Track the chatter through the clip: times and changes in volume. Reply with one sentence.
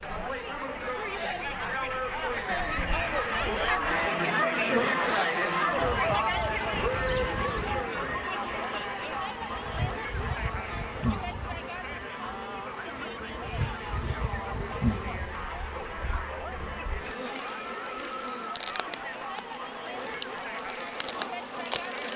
You can hear the chatter from 0.0 to 22.1 s, getting quieter.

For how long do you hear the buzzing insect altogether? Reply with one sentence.
You can hear the buzzing insect for 22 seconds altogether.